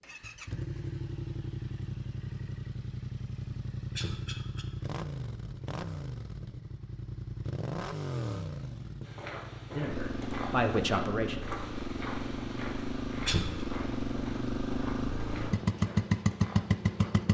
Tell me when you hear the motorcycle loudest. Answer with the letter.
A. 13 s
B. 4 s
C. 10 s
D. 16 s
D.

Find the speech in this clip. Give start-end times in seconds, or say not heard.
9.7-11.3.